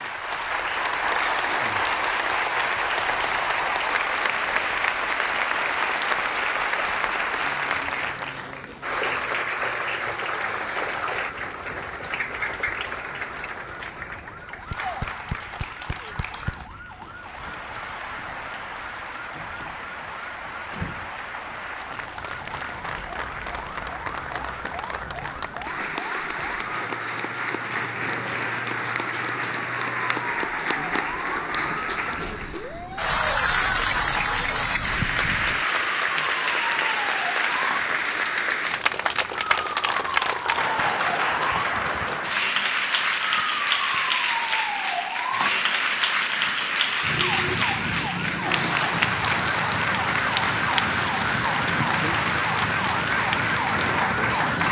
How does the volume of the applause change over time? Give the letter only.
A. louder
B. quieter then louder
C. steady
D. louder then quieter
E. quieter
B.